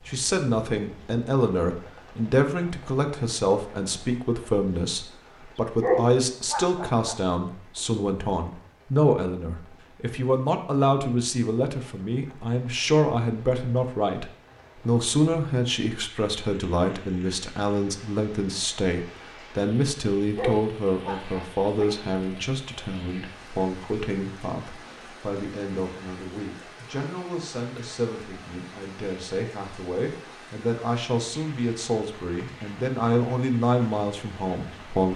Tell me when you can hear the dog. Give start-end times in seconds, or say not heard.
5.8-7.2, 20.4-22.0.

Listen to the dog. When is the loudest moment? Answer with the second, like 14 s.
6 s.